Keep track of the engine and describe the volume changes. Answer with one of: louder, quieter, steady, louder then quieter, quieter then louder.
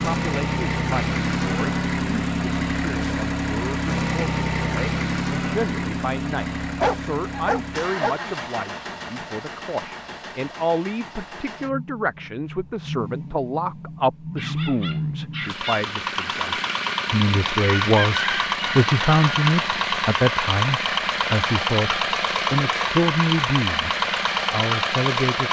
quieter then louder.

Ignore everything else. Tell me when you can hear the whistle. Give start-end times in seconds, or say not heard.
not heard.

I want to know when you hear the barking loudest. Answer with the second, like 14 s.
7 s.